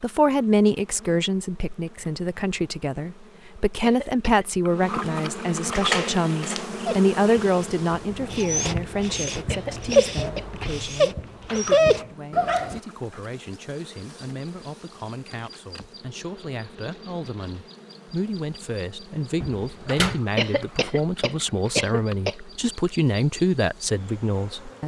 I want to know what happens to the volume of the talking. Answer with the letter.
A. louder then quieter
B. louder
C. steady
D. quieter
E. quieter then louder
E.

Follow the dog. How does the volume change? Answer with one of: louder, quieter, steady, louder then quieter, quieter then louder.
louder.